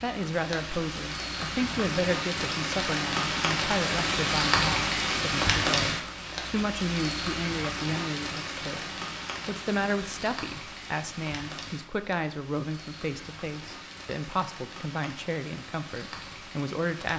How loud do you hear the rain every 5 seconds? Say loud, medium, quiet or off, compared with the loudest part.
loud, loud, quiet, quiet.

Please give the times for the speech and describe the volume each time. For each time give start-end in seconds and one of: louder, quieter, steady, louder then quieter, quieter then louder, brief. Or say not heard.
0.0-17.1 steady.